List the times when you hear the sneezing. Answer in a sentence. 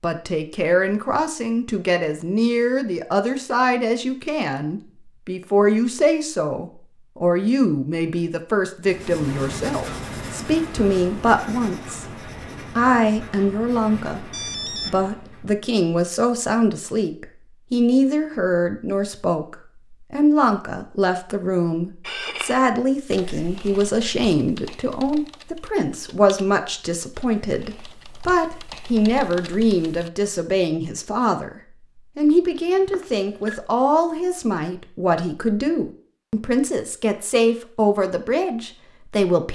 The sneezing can't be heard in this clip.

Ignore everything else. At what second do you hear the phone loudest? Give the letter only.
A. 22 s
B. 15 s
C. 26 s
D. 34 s
B.